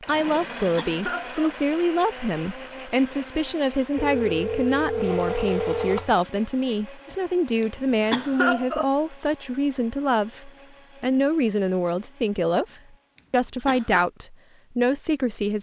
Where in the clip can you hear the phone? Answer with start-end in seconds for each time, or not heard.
4.0-6.2.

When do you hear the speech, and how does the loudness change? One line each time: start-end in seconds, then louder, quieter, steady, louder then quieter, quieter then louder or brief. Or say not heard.
0.1-15.5 steady.